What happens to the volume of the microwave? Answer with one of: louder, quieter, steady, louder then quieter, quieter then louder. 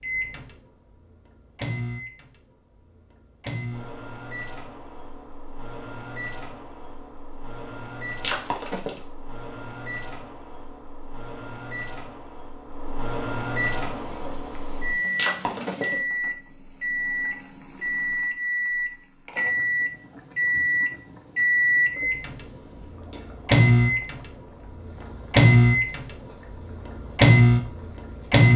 louder.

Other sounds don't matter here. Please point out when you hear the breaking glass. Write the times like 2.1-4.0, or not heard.
8.2-9.0, 15.2-15.9.